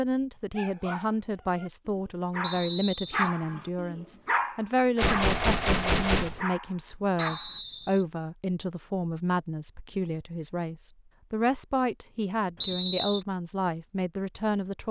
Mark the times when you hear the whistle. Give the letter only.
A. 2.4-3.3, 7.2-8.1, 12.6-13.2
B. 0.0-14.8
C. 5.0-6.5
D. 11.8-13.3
A.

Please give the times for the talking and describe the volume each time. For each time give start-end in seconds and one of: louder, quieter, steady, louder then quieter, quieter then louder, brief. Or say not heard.
0.0-14.8 steady.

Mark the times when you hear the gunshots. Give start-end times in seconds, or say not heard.
5.0-6.5.